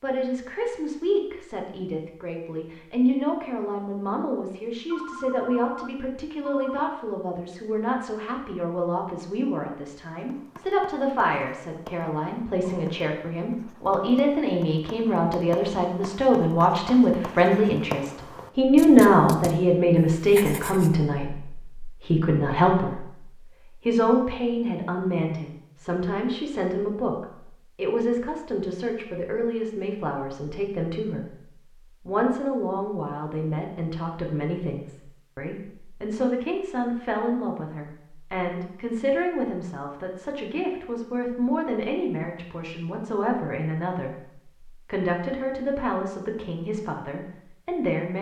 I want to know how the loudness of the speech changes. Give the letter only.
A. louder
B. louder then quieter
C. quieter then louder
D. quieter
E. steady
B.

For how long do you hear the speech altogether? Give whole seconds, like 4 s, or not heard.
48 s.